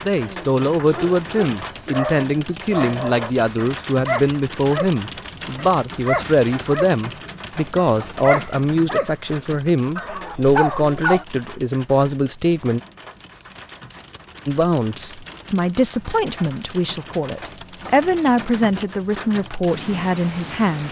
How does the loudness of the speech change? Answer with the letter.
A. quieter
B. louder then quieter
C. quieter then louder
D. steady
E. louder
D.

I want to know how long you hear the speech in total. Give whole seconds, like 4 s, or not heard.
19 s.